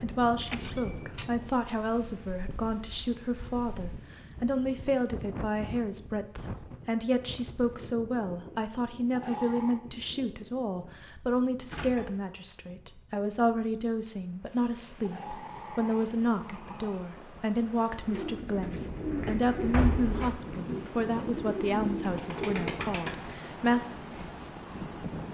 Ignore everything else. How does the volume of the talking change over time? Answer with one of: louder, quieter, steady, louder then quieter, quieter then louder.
steady.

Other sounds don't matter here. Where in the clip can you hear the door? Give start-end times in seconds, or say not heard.
0.4-1.2, 11.7-12.2, 19.7-20.4.